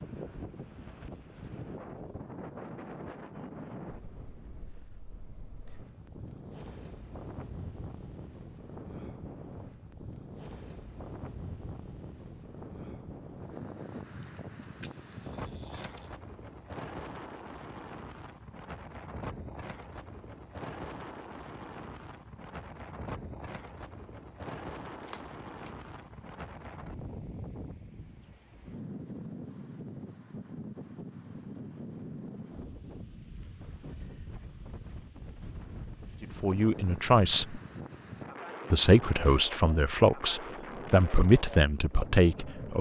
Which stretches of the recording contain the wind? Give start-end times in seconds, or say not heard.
0.0-42.7.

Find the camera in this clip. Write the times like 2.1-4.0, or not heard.
14.3-16.1, 25.0-26.2.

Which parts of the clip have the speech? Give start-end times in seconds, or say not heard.
36.2-37.6, 38.7-42.7.